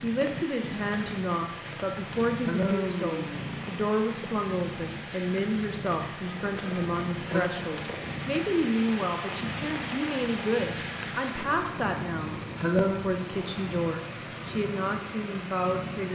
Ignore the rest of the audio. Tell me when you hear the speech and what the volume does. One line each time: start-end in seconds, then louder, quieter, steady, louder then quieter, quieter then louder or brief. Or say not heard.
0.0-16.1 steady.